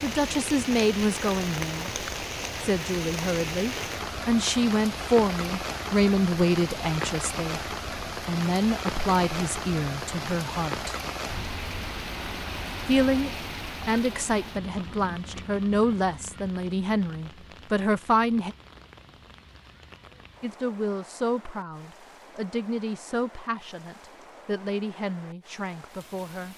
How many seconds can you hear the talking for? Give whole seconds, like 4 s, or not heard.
22 s.